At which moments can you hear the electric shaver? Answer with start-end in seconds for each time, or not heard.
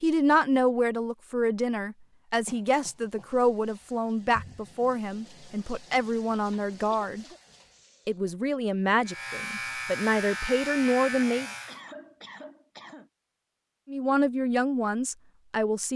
9.0-11.8.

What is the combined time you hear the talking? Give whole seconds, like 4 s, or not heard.
13 s.